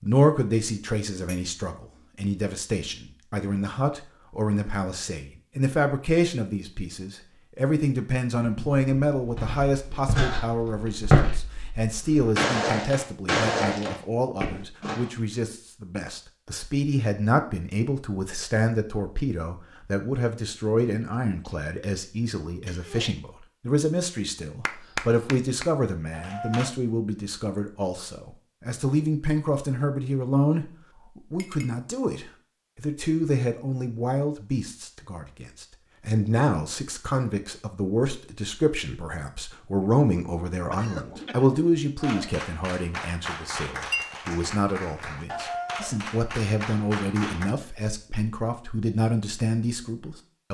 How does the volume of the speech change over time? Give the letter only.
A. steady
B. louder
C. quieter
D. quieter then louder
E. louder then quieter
A.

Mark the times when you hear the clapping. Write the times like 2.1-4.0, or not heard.
24.6-26.8, 42.0-47.5.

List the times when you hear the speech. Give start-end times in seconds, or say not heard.
0.0-50.4.